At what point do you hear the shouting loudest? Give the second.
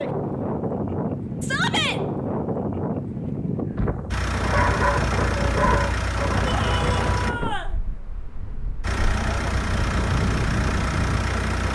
2 s.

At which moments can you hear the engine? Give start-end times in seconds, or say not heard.
4.1-7.3, 8.8-11.7.